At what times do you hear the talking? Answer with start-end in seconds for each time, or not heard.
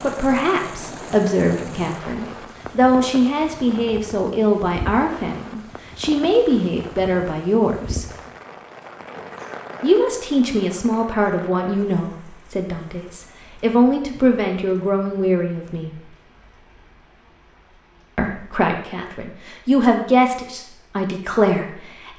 0.0-8.1, 9.8-16.1, 18.1-22.1.